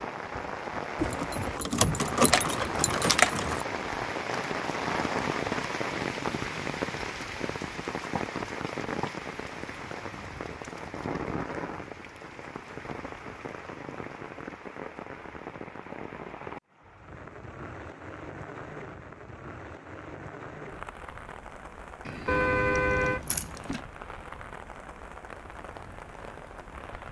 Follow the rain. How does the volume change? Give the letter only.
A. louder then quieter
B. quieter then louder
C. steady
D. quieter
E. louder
D.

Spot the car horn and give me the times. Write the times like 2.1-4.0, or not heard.
22.2-23.3.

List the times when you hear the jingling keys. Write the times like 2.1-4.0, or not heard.
0.9-3.6, 22.1-23.8.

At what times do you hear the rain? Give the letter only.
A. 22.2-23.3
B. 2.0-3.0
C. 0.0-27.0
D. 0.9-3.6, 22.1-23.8
C.